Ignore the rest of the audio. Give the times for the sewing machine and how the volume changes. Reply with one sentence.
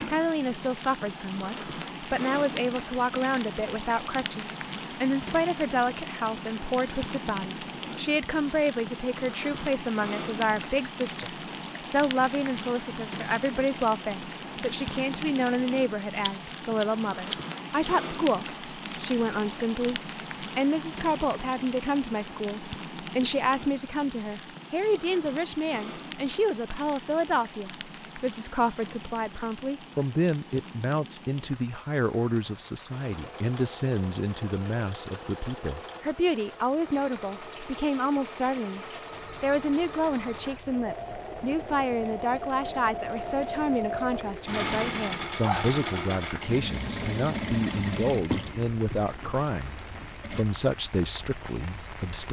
The sewing machine can be heard from 32.9 to 50.5 s, getting louder.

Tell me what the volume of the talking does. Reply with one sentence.
The volume of the talking stays about the same.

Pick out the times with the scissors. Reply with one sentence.
You can hear the scissors from 15.8 to 17.9 s.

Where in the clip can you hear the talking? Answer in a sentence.
The talking can be heard from 0.1 to 52.2 s.